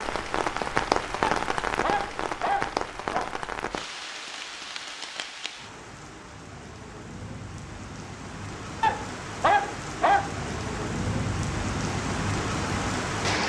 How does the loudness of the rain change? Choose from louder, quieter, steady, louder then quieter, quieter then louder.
quieter then louder.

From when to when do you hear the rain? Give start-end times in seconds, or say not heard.
0.0-13.4.